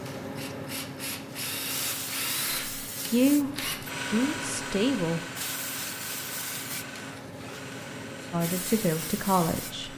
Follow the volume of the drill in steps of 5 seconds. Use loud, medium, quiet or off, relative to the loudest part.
loud, medium.